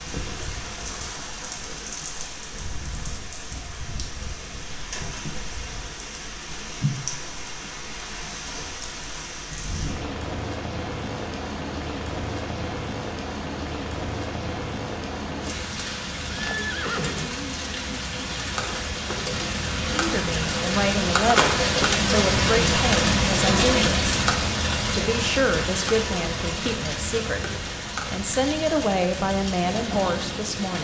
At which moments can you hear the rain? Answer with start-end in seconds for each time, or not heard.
0.0-30.7.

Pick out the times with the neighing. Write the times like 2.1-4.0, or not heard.
16.2-18.1.